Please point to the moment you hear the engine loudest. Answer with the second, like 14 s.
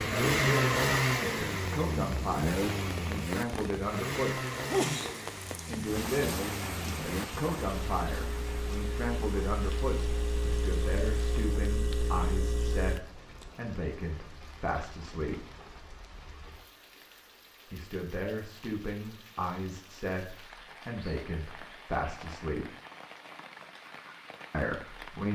1 s.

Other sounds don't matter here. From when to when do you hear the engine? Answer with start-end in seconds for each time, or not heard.
0.0-13.0.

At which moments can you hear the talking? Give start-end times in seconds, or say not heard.
0.0-4.4, 5.7-15.4, 17.7-22.7, 24.5-25.3.